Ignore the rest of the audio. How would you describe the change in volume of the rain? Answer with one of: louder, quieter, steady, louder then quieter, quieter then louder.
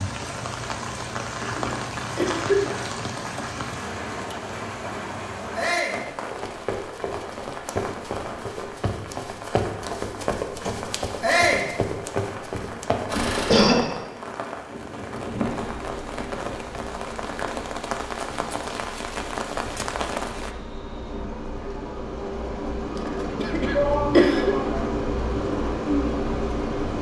quieter then louder.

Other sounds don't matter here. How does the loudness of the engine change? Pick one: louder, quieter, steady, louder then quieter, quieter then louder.
quieter then louder.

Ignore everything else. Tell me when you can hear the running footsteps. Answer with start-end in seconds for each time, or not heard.
6.1-13.6.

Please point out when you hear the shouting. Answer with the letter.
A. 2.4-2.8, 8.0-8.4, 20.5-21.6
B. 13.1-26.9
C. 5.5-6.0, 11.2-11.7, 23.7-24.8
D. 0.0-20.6
C.